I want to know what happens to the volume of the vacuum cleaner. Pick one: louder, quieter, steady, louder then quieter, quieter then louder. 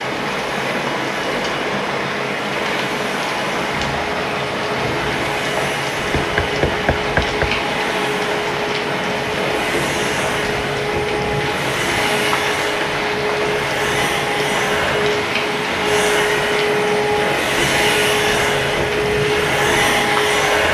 louder.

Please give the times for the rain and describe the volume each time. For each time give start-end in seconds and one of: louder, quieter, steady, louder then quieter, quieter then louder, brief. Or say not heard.
0.0-20.7 steady.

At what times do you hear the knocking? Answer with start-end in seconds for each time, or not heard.
6.2-7.6.